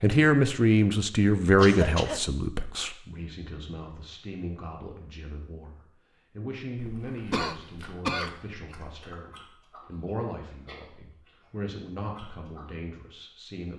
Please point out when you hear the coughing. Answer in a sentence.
You can hear the coughing from 1.6 to 2.3 s and from 7.3 to 8.3 s.